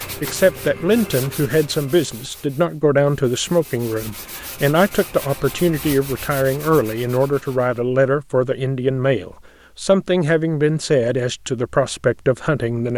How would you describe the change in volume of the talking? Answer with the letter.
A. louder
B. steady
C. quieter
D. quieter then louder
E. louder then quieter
B.